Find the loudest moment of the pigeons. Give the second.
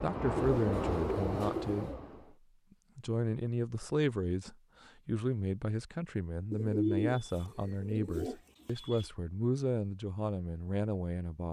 7 s.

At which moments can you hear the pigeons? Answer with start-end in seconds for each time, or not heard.
0.3-2.0, 6.5-9.1.